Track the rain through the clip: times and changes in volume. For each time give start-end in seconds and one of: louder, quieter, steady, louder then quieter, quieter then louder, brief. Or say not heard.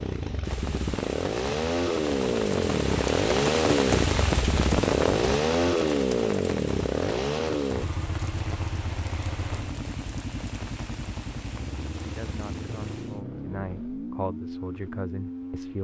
0.2-13.2 louder then quieter.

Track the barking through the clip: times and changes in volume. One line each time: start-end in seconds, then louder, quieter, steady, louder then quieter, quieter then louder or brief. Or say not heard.
not heard.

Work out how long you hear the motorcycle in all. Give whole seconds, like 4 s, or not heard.
16 s.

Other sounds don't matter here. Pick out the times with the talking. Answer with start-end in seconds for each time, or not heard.
12.0-15.8.